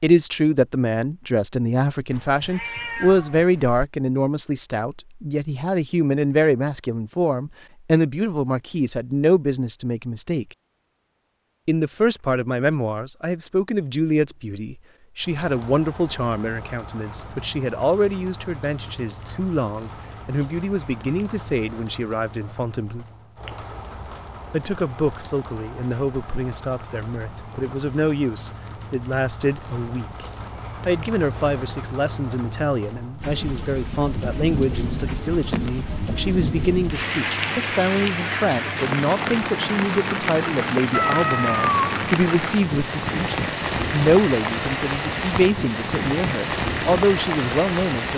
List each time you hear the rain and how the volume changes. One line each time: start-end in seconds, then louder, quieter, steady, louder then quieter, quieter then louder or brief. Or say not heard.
15.2-48.1 louder.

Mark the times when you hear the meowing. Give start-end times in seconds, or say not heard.
2.1-3.8, 40.9-42.0.